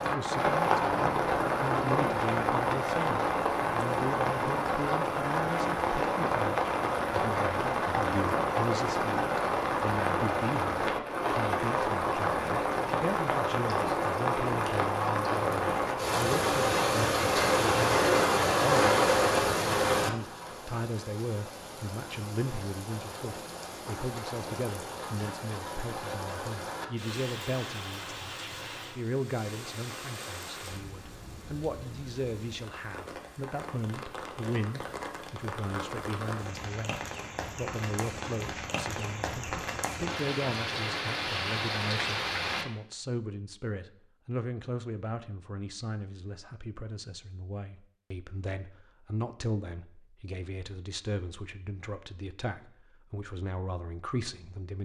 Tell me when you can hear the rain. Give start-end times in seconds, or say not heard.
0.0-42.6.